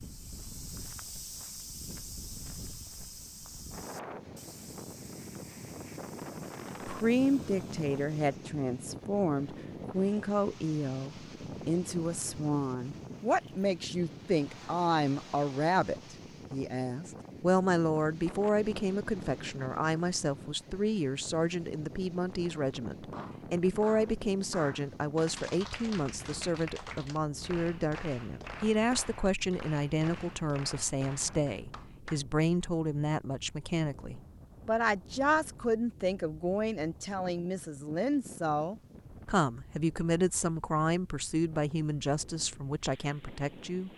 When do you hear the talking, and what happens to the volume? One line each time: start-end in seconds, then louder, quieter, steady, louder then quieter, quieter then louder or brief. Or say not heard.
6.8-43.9 steady.